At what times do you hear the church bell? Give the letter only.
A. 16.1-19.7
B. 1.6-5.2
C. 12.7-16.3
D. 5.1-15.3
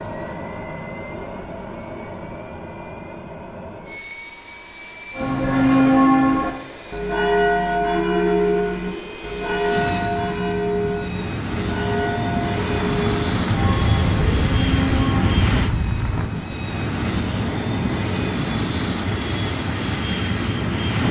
D.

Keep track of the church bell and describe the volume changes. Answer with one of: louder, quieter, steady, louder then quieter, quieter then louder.
quieter.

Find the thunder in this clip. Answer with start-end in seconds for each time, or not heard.
12.7-16.3.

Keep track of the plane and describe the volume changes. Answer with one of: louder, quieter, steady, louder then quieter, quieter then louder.
louder.